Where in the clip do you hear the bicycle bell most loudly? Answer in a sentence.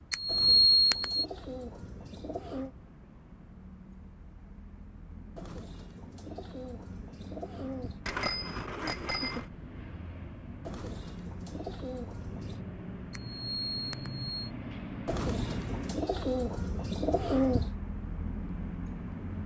The loudest moment of the bicycle bell is at 1 second.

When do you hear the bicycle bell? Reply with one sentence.
The bicycle bell can be heard from 0.1 to 1.2 s, from 8.1 to 9.4 s and from 13.1 to 14.3 s.